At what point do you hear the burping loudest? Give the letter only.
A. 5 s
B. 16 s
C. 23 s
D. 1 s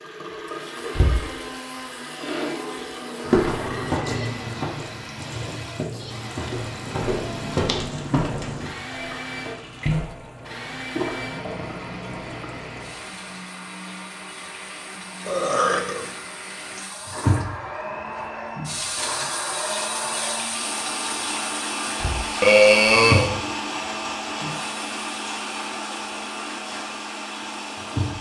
C.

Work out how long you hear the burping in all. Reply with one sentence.
You can hear the burping for 3 seconds altogether.